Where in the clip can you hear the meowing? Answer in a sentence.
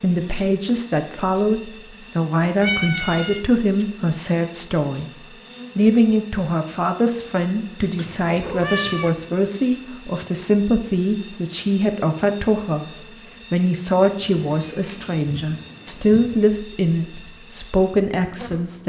The meowing can be heard from 2.6 to 3.5 s, from 8.0 to 9.1 s and from 14.0 to 16.5 s.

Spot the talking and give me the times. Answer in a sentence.
You can hear the talking from 0.0 to 5.0 s, from 5.8 to 12.9 s and from 13.5 to 18.8 s.